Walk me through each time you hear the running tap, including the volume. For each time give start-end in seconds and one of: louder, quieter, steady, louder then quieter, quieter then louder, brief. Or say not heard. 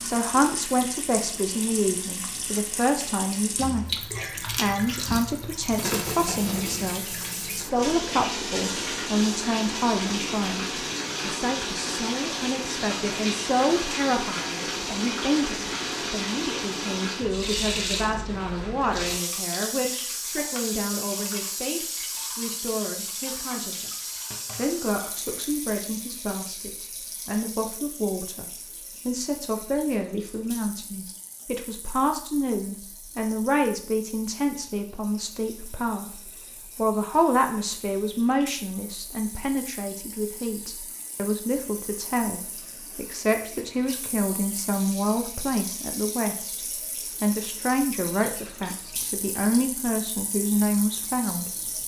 0.0-51.8 quieter then louder.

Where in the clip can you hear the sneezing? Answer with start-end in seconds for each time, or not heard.
not heard.